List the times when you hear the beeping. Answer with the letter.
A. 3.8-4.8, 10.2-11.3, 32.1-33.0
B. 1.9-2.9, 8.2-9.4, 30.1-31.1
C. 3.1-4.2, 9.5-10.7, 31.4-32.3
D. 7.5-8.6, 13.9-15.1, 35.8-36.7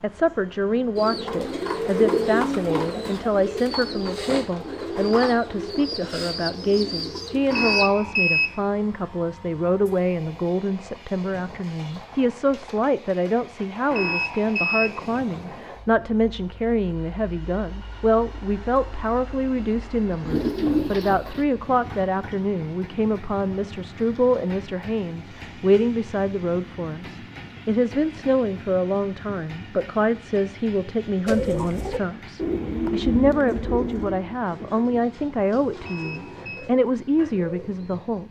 D.